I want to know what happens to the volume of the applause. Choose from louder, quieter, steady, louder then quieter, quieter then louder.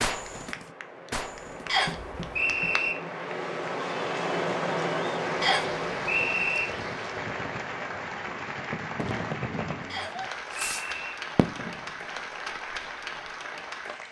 louder.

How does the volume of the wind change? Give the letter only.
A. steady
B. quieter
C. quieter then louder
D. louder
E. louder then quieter
E.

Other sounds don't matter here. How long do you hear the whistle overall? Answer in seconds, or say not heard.
4 s.